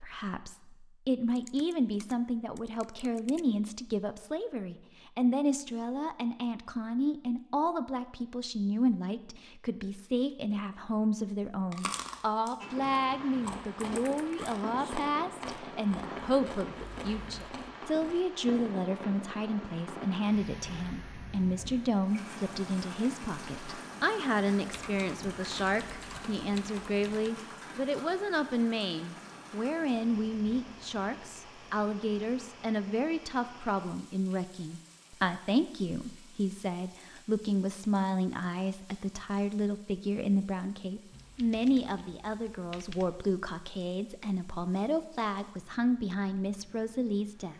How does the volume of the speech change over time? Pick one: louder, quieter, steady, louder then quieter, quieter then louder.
steady.